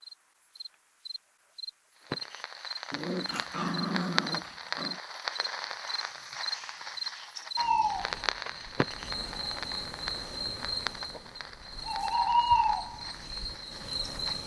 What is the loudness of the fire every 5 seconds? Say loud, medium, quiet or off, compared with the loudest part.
loud, loud, medium.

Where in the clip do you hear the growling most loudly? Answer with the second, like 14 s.
4 s.